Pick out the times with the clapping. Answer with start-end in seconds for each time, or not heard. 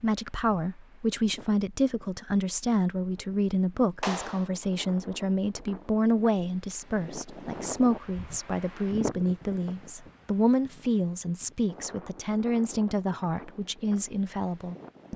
4.0-4.5.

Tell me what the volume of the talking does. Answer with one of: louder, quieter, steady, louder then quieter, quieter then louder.
steady.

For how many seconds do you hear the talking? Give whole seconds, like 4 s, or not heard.
15 s.